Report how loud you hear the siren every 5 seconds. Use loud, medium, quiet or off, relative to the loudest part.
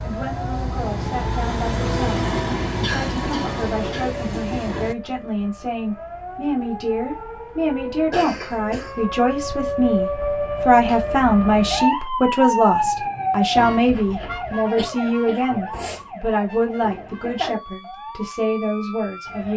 medium, medium, loud, medium.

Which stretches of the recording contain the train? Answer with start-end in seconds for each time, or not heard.
0.0-5.0.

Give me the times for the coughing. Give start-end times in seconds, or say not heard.
2.8-4.2, 8.1-9.0, 14.8-16.1.